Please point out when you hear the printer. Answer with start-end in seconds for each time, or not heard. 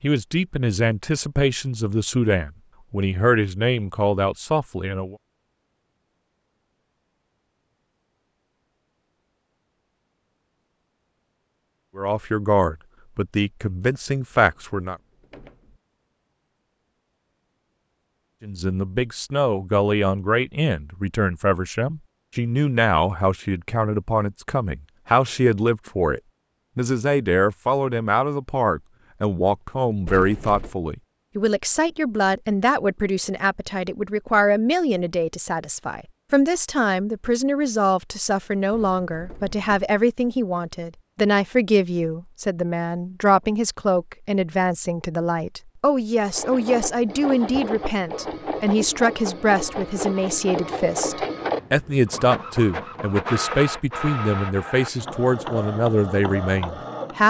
46.2-57.2.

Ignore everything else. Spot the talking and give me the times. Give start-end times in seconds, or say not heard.
0.0-5.2, 11.9-14.9, 18.4-57.2.